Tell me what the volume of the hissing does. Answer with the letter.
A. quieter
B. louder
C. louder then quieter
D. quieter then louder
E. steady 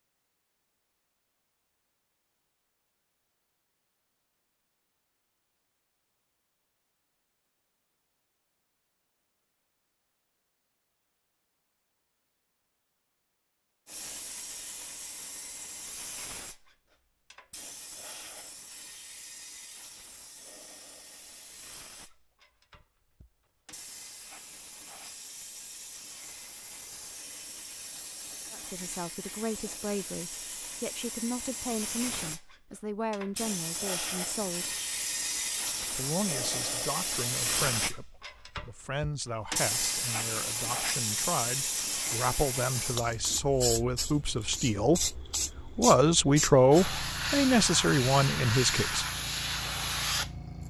B.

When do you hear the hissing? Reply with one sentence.
You can hear the hissing from 13.8 to 50.6 s.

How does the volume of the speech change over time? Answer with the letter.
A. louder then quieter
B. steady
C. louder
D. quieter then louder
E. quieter
C.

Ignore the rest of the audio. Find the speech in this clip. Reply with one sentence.
You can hear the speech from 28.5 to 34.8 s and from 35.9 to 49.0 s.